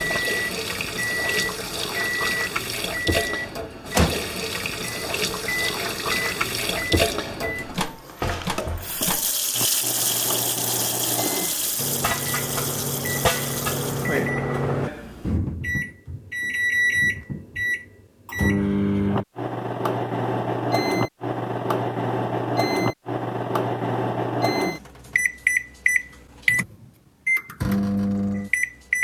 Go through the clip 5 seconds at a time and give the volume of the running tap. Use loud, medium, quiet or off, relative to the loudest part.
loud, loud, loud, off, off, off.